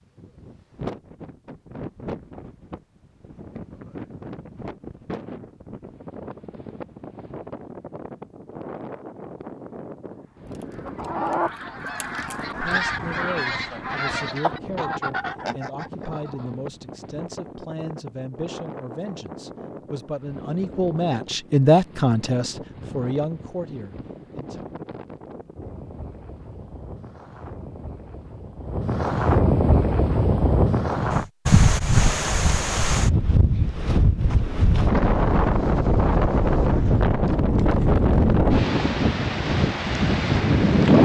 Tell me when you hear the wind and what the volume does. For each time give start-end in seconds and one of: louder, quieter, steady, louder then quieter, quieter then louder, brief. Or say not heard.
0.0-41.0 louder.